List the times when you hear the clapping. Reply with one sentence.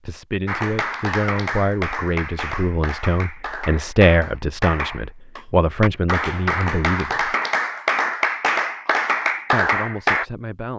You can hear the clapping from 0.5 to 10.2 s.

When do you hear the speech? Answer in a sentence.
You can hear the speech from 0.1 to 7.3 s and from 9.5 to 10.7 s.